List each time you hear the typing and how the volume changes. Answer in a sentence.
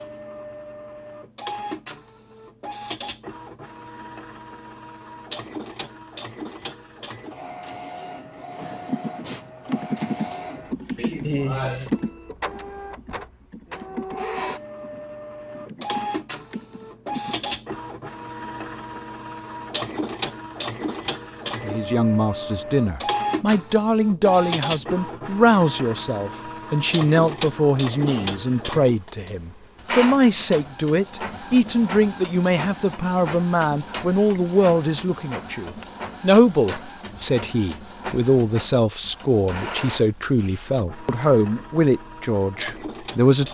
The typing can be heard from 8.8 to 17.5 s, getting quieter then louder.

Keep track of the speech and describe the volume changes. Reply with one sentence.
The loudness of the speech stays about the same.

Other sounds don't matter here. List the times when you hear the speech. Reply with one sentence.
The speech can be heard from 21.6 to 43.5 s.